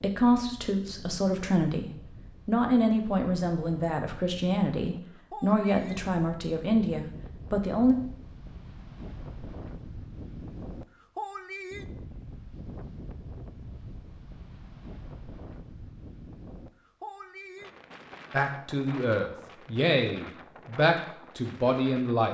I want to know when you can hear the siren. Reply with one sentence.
The siren can't be heard in this clip.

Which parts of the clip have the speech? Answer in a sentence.
You can hear the speech from 0.0 to 8.0 s and from 18.3 to 22.2 s.